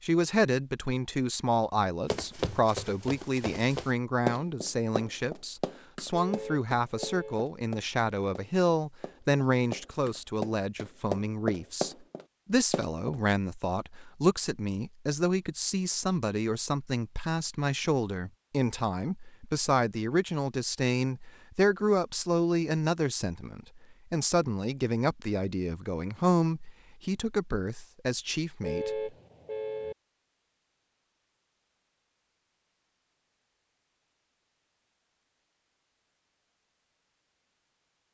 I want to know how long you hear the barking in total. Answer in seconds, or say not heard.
not heard.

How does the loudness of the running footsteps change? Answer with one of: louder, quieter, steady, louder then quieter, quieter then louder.
quieter then louder.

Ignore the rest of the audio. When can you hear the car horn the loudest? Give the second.
29 s.